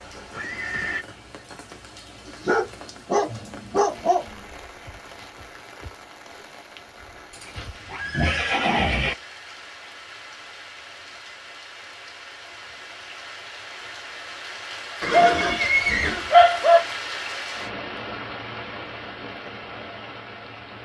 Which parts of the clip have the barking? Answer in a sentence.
The barking can be heard from 2.2 to 4.4 s and from 15.1 to 16.8 s.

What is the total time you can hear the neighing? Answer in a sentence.
The neighing can be heard for 4 seconds in total.